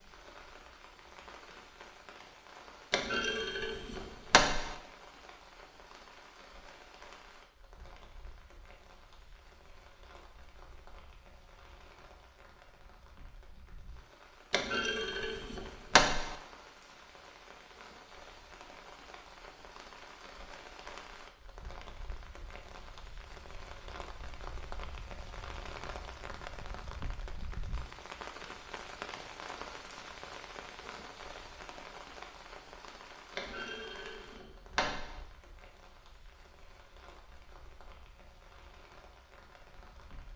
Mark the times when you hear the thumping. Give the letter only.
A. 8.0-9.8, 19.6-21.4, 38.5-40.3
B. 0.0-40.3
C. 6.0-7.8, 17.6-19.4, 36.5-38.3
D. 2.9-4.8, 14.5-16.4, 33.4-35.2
D.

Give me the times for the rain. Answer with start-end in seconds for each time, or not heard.
0.0-40.3.